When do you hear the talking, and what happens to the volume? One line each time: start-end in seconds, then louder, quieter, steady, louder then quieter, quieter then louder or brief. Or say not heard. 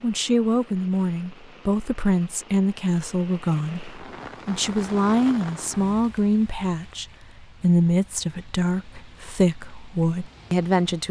0.0-11.0 steady.